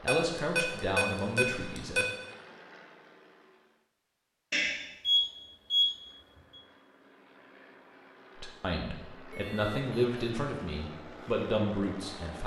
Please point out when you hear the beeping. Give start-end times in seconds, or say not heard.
0.1-2.0, 4.5-5.9, 9.3-10.2.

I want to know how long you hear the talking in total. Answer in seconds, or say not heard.
6 s.